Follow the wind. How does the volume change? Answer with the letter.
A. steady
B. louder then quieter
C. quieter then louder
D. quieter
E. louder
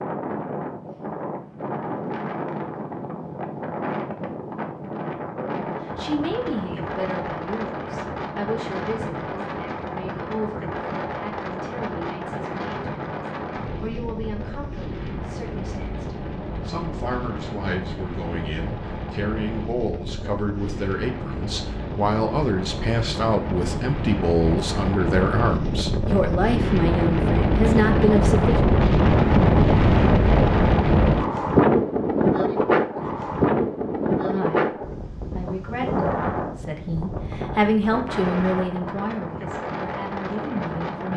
B.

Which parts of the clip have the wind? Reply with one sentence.
The wind can be heard from 0.0 to 41.1 s.